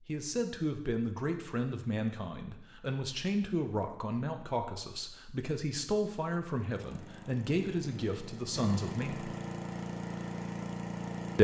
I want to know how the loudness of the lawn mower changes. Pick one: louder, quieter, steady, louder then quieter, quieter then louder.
louder.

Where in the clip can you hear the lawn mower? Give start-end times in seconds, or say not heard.
6.6-11.3.